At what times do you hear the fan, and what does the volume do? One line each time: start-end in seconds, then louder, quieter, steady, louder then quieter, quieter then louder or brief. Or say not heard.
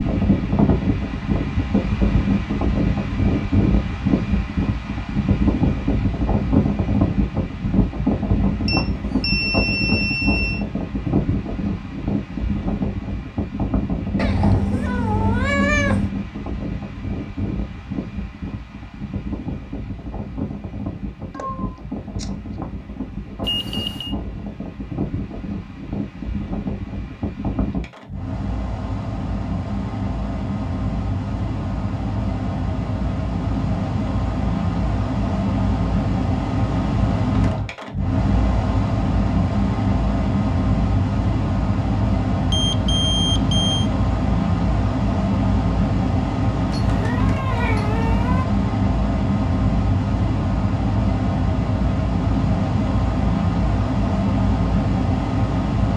0.0-55.9 quieter then louder.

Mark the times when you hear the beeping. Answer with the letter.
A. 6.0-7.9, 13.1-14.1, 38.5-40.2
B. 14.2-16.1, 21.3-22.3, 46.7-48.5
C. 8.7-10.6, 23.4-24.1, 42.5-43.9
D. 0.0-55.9
C.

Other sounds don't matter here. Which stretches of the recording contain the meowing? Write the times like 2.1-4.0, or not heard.
14.2-16.1, 21.3-22.3, 46.7-48.5.